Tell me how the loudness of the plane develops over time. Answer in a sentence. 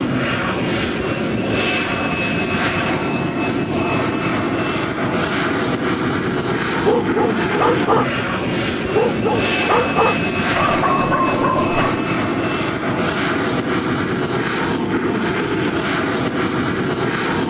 The volume of the plane stays about the same.